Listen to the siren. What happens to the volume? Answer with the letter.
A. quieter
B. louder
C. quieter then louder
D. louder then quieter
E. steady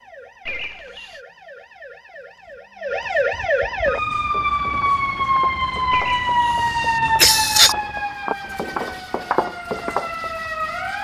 D.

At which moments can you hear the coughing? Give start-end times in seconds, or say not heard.
0.5-1.2, 5.9-7.8.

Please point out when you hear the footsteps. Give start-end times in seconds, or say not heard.
3.9-10.5.